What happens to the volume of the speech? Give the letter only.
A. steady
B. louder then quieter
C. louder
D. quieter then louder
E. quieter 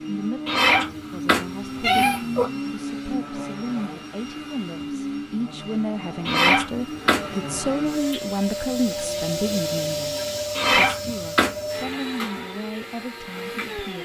B.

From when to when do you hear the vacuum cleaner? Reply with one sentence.
The vacuum cleaner can be heard from 0.0 to 13.9 s.